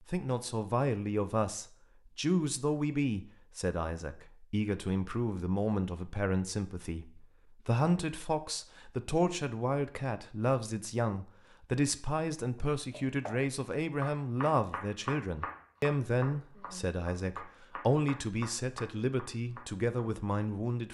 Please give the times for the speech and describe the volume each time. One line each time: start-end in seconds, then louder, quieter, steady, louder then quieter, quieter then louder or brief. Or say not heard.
0.1-20.8 steady.